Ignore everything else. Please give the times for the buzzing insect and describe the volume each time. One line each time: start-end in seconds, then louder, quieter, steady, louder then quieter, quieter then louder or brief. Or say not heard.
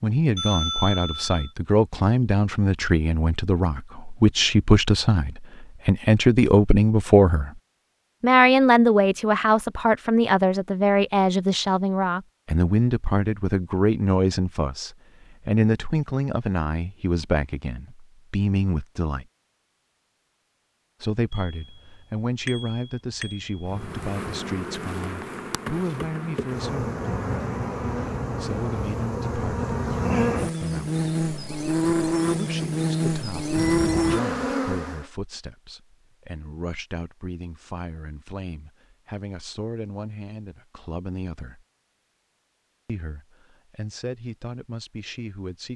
23.7-35.0 louder.